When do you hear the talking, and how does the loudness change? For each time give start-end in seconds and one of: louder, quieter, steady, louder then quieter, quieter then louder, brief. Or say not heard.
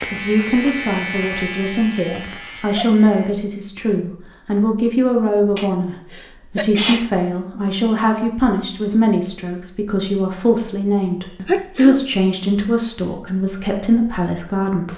0.1-14.9 steady.